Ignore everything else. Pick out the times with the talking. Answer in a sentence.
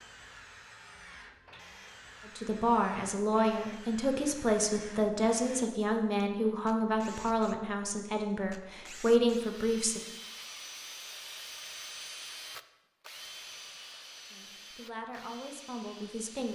You can hear the talking from 2.2 to 10.0 s and from 14.3 to 16.5 s.